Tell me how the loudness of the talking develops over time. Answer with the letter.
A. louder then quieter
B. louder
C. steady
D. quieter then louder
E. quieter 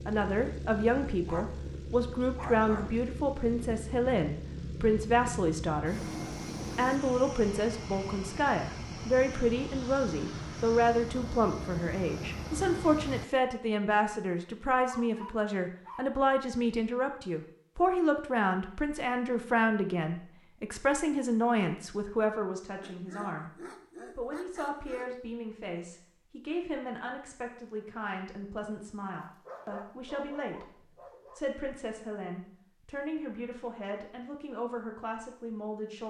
E.